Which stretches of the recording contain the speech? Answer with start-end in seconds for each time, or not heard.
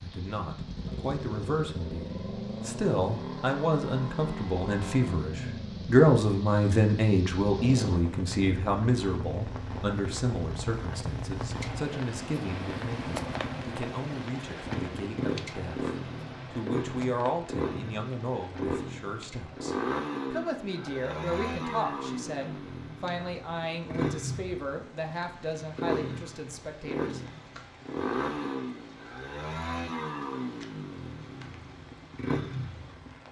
0.0-15.9, 16.5-27.2.